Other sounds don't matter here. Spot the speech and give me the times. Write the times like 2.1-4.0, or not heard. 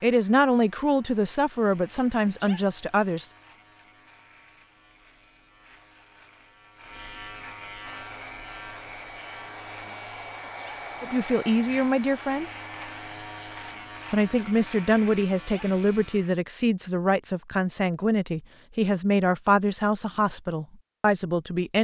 0.0-3.3, 11.0-12.5, 14.1-21.7.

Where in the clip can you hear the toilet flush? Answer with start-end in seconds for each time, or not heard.
not heard.